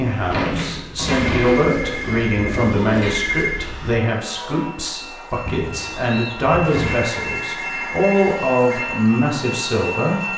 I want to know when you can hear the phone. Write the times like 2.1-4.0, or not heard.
0.9-3.6, 6.6-8.8.